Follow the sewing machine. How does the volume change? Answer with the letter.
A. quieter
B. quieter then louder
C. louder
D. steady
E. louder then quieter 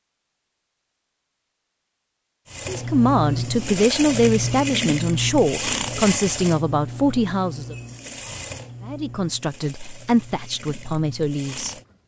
A.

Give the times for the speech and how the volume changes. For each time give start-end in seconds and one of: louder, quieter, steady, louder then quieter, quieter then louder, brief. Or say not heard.
2.6-7.8 steady
8.8-11.8 brief.